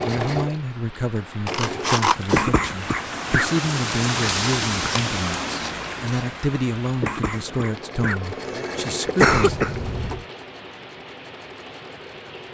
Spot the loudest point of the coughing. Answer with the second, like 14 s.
9 s.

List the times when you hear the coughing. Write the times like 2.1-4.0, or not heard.
2.3-3.5, 7.0-9.7.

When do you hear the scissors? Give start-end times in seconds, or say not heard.
1.4-2.5, 4.8-6.2, 9.2-10.3.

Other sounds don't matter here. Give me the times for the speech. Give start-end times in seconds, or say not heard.
0.1-9.6.